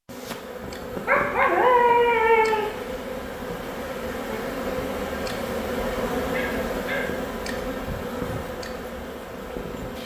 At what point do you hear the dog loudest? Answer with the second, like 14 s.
2 s.